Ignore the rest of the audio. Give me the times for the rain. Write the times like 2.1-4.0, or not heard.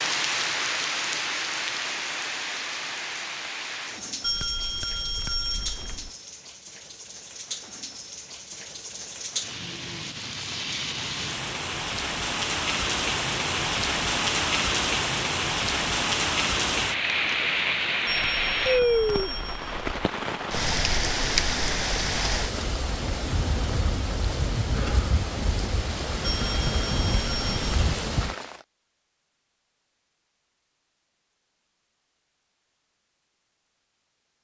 0.0-28.6.